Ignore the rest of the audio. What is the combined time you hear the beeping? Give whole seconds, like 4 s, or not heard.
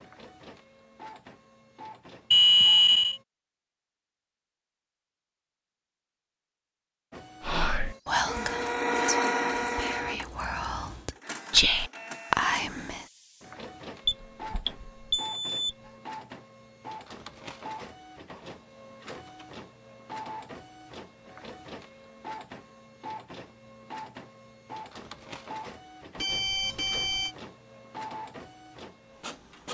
4 s.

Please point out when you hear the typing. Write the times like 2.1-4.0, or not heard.
not heard.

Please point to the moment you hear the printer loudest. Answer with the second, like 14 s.
9 s.